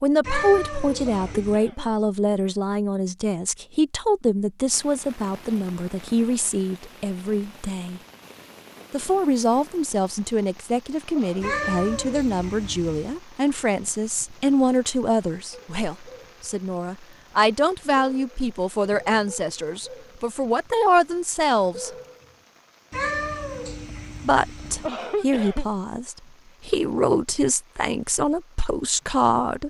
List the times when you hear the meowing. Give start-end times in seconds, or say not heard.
0.2-1.6, 11.4-13.2, 22.9-24.9.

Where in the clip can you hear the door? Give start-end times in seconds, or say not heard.
not heard.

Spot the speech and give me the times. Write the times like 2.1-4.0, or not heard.
0.0-8.0, 8.9-21.9, 24.2-29.6.